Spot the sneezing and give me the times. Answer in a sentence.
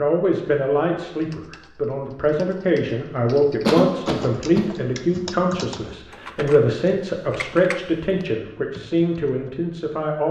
You can hear the sneezing from 3.6 to 4.8 s.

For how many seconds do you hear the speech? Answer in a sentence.
The speech can be heard for 10 seconds in total.